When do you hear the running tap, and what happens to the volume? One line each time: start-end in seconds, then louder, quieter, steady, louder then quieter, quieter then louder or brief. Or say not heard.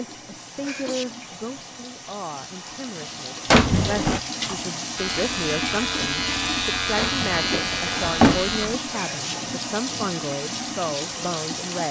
0.0-11.8 louder.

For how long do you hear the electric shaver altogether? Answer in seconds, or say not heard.
4 s.